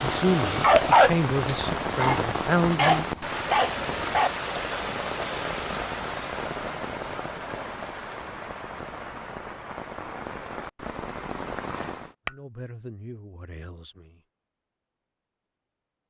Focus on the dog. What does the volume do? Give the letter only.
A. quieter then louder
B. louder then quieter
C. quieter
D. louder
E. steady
A.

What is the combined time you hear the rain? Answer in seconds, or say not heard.
12 s.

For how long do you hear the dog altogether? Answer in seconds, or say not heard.
4 s.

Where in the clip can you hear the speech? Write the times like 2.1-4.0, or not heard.
0.0-3.0, 12.2-14.2.